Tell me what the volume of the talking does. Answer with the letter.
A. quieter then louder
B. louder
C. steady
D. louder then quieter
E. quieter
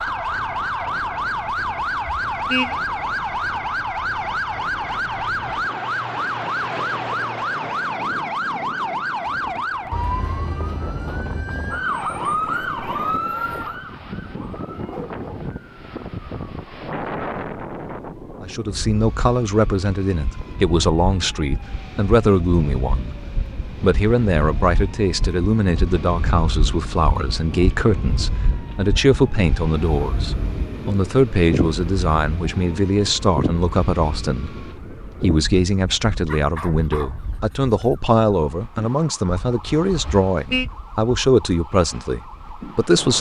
C.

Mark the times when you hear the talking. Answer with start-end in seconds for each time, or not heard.
18.4-43.1.